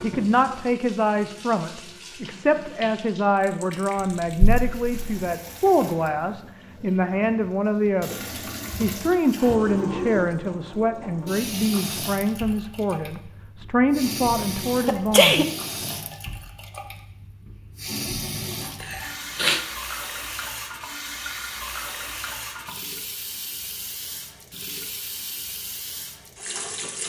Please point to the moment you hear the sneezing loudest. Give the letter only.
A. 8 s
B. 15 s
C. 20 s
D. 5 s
B.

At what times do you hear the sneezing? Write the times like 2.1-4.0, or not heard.
4.0-5.1, 14.8-15.4, 18.8-19.6.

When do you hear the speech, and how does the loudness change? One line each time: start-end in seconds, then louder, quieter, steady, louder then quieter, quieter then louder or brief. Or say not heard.
0.0-15.4 steady.